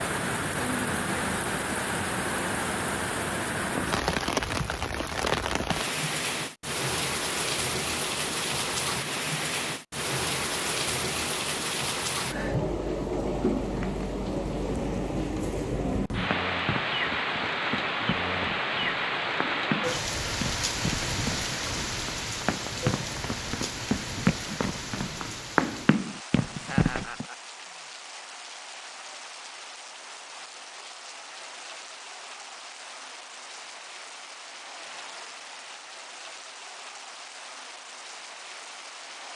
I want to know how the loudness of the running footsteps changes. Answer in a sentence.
The loudness of the running footsteps goes up.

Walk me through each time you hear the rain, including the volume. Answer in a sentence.
You can hear the rain from 0.0 to 39.3 s, getting quieter.